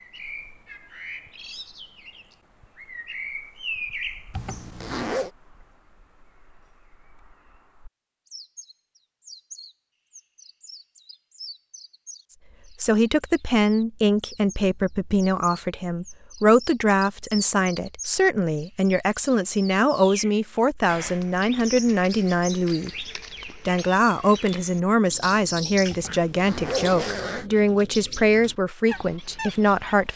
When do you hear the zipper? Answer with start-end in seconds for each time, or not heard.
4.3-5.3, 25.9-27.4.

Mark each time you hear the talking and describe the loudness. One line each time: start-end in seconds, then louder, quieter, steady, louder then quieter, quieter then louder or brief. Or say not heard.
12.8-30.1 steady.